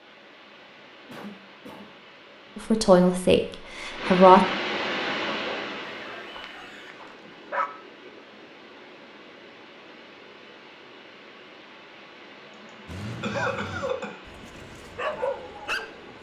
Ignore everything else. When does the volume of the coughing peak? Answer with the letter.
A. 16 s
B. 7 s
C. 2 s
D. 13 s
D.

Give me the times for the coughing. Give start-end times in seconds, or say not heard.
1.1-1.9, 6.0-7.0, 12.6-14.2.